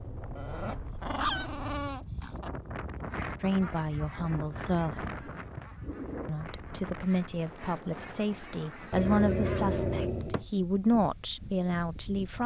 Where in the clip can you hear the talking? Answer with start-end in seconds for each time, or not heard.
3.4-5.2, 6.2-12.4.